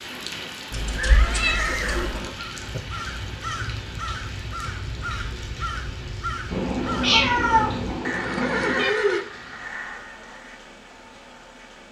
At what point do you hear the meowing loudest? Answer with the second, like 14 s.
7 s.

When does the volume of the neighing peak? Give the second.
9 s.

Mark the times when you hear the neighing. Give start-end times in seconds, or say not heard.
0.9-2.8, 8.1-9.2.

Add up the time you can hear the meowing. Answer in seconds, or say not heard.
4 s.